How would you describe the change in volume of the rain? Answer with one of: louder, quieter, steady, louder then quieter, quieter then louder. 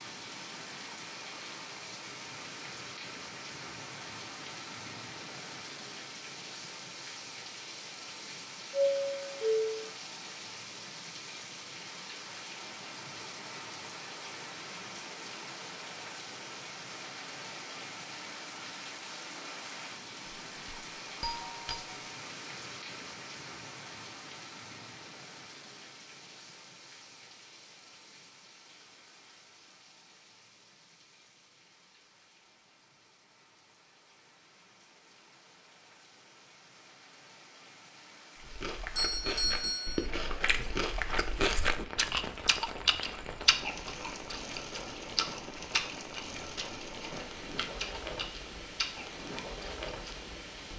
quieter then louder.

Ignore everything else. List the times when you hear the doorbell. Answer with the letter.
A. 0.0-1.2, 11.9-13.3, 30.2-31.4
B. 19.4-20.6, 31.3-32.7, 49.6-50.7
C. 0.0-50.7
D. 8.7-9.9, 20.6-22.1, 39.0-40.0
D.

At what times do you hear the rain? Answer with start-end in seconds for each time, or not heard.
0.0-50.7.